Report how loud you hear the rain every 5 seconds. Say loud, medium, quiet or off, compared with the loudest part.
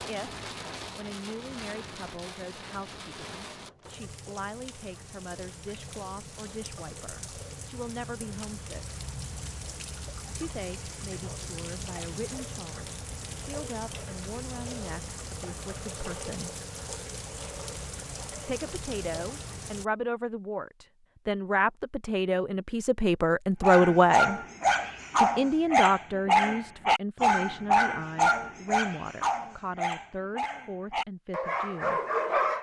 loud, loud, loud, loud, off, off, off.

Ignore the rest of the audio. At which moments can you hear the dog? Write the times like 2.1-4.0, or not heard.
23.6-32.5.